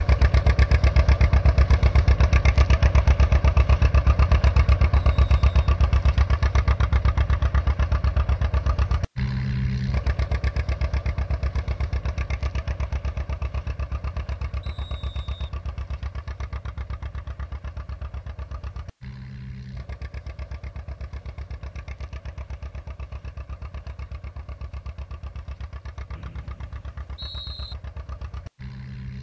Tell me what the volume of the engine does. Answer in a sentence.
The loudness of the engine goes down.